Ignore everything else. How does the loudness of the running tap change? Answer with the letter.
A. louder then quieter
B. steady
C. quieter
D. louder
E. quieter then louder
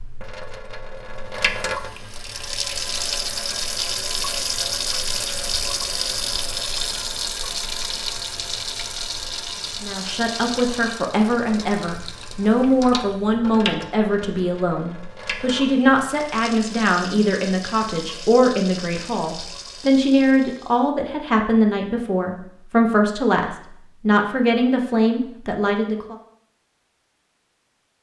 C.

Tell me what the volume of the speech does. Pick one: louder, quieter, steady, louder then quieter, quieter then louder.
steady.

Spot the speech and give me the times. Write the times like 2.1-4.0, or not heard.
9.8-26.1.